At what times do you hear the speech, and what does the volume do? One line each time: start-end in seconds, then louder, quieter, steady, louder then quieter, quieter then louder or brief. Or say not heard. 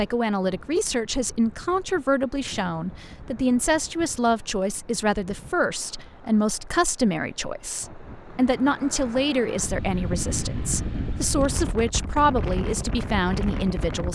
0.0-14.1 steady.